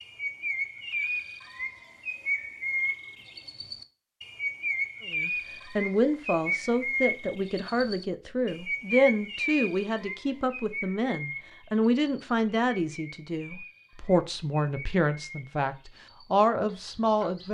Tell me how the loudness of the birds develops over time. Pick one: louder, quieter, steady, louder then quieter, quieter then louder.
quieter.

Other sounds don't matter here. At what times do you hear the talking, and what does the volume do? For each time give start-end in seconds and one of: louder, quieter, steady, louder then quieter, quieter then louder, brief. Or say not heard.
5.1-17.4 steady.